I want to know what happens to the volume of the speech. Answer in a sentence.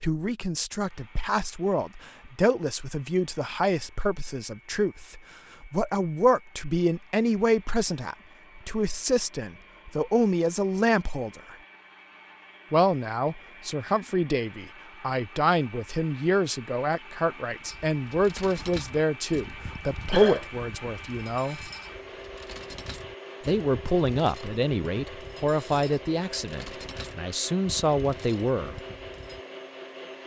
The loudness of the speech stays about the same.